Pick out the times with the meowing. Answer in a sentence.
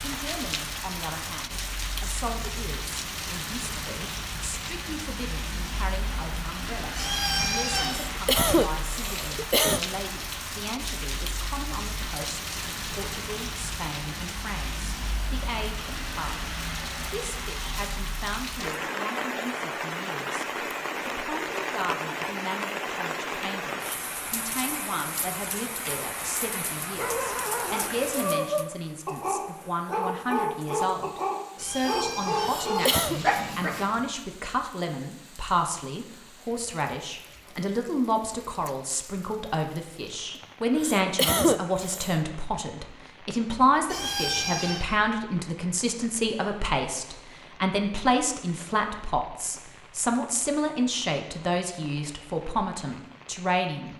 You can hear the meowing from 7.0 to 8.0 s, from 31.6 to 34.0 s and from 43.9 to 44.9 s.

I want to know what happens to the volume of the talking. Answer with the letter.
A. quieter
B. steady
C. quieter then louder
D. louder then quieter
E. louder
E.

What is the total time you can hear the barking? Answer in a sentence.
You can hear the barking for 7 seconds altogether.